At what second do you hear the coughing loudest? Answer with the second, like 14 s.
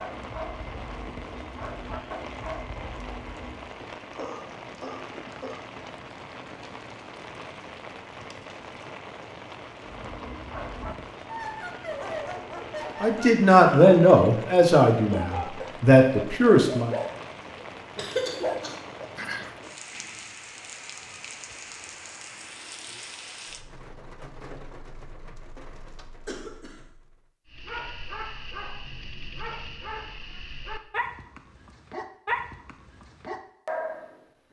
18 s.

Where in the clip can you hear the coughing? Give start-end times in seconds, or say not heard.
4.2-5.7, 17.9-18.9, 26.2-26.9.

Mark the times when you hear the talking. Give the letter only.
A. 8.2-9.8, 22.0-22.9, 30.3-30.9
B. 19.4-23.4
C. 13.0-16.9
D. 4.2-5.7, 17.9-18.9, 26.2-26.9
C.